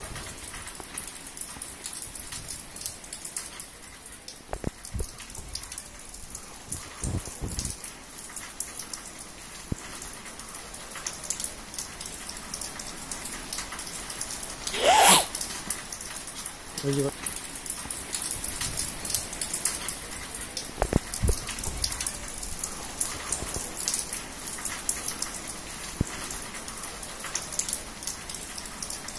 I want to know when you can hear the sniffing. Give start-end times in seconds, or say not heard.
5.5-7.8, 14.8-15.2.